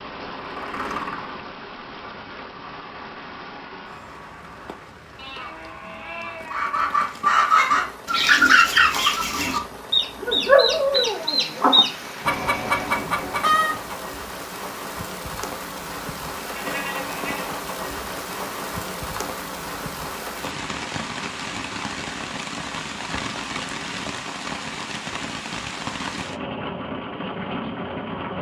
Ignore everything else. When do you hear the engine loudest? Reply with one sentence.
The loudest moment of the engine is at 1 second.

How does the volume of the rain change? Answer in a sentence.
The volume of the rain goes up.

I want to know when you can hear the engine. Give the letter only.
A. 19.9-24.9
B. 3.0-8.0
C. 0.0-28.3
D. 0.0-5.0
D.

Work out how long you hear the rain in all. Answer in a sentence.
You can hear the rain for 28 seconds altogether.